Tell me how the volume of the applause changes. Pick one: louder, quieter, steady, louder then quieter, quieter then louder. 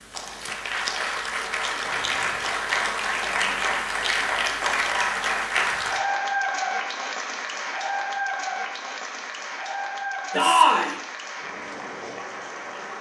quieter.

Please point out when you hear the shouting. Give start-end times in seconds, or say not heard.
10.3-10.9.